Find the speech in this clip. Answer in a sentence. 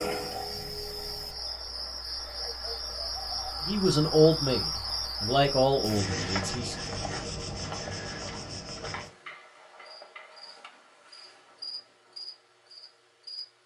You can hear the speech from 3.6 to 6.8 s.